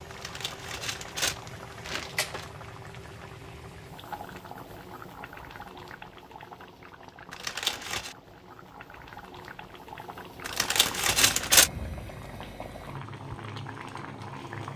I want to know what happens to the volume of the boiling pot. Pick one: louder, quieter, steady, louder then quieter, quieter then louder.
quieter then louder.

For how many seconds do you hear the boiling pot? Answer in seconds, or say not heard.
15 s.